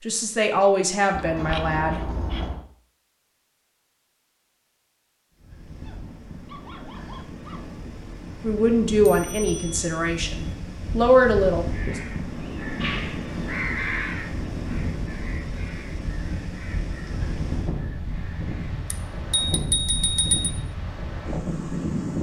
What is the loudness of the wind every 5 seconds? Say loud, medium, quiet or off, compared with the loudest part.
off, medium, loud, loud, loud.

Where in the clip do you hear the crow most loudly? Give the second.
14 s.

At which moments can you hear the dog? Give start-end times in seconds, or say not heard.
5.8-7.7.